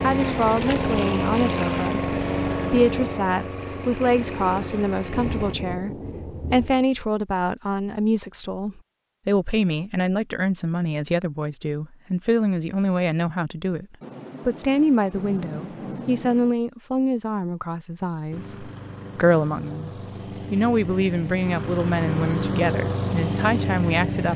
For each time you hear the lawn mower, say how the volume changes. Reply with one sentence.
You can hear the lawn mower from 0.0 to 5.5 s, getting quieter; and from 18.3 to 24.3 s, getting louder.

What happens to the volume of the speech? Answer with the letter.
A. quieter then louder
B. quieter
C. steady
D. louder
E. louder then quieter
C.